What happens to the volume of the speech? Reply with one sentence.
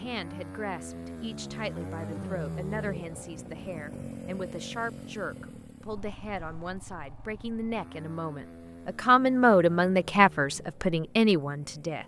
The volume of the speech goes up.